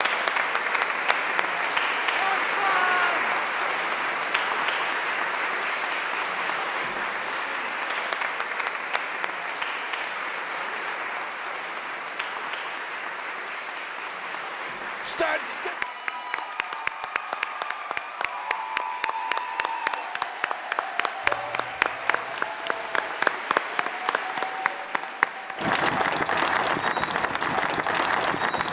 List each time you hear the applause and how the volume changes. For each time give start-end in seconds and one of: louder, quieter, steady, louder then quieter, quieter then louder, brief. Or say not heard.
0.0-28.6 quieter then louder.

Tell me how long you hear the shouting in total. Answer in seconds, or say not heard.
4 s.